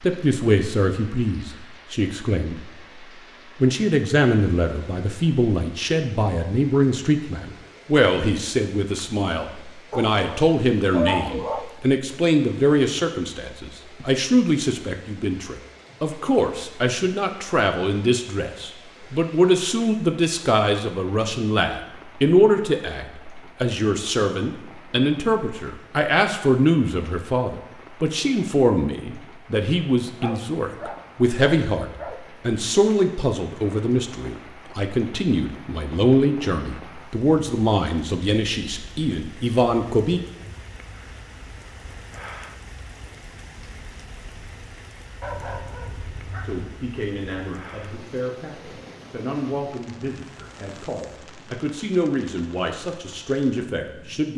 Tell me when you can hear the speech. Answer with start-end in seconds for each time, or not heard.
0.0-2.6, 3.6-40.2, 46.4-54.3.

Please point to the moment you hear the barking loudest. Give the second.
11 s.